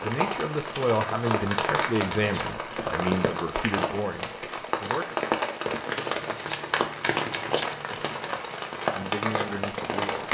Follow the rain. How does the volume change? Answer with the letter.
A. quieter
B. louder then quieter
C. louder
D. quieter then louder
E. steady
E.